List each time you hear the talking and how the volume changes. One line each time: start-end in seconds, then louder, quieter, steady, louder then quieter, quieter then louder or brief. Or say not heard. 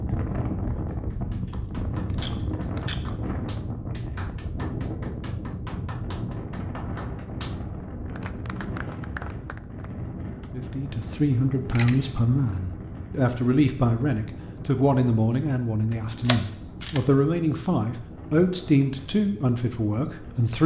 10.5-20.6 steady.